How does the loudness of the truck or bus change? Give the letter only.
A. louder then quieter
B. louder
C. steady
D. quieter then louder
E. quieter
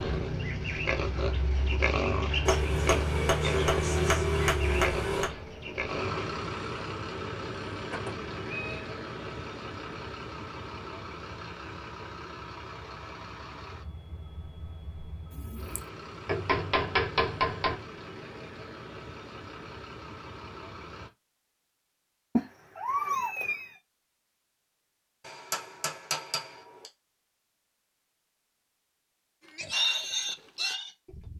E.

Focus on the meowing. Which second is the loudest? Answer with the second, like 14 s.
23 s.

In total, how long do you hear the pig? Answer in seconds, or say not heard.
8 s.